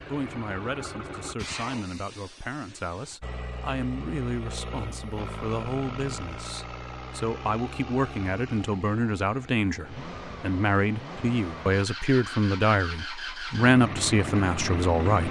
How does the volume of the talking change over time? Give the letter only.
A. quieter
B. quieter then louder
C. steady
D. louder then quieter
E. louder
E.